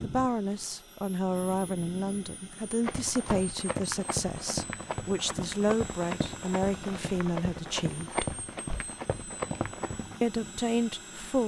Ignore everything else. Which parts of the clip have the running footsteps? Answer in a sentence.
You can hear the running footsteps from 2.8 to 10.2 s.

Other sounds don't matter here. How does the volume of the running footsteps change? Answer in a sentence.
The volume of the running footsteps stays about the same.